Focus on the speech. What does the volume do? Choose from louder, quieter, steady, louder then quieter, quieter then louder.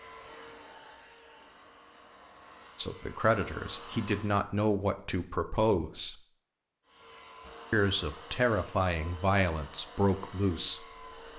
steady.